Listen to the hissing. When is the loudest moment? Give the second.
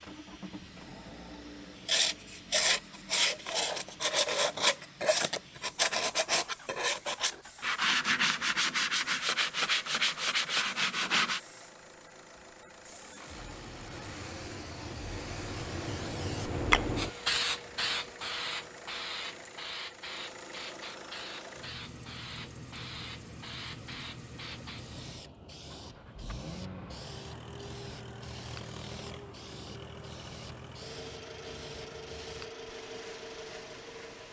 17 s.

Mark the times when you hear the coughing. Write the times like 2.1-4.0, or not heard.
not heard.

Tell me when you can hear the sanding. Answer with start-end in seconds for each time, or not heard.
1.9-11.4.